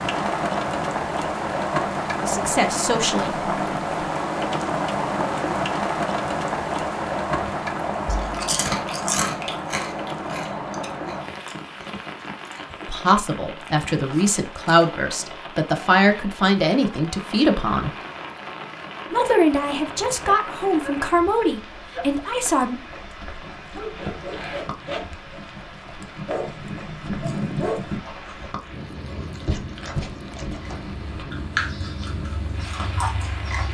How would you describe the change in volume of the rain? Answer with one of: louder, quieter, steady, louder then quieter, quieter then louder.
quieter.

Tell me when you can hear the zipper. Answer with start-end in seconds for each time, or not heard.
23.9-25.1.